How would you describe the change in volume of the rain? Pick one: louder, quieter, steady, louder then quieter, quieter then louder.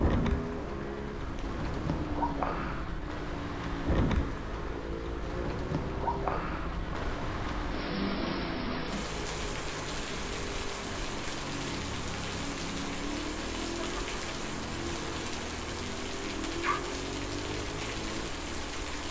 steady.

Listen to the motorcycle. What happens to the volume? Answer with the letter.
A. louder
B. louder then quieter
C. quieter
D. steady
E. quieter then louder
D.